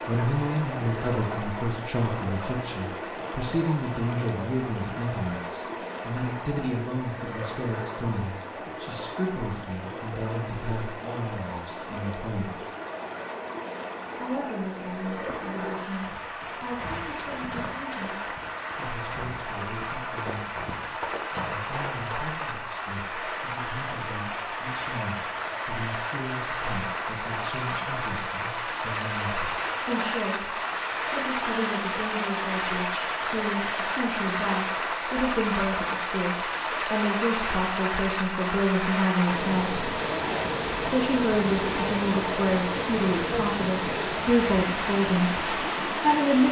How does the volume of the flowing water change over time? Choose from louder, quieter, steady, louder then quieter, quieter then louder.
louder.